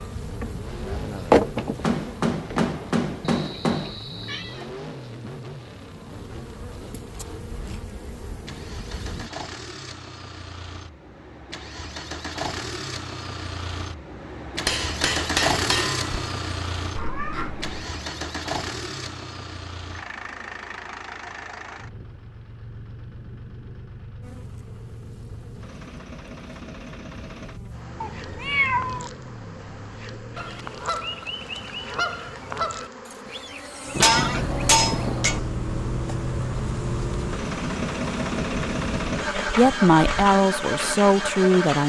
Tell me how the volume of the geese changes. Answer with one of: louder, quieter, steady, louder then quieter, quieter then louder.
quieter then louder.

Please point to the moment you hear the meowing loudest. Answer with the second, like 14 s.
29 s.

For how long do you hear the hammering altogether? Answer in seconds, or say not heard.
5 s.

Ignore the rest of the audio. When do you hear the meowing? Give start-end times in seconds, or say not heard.
3.2-4.7, 16.9-17.9, 28.0-29.1.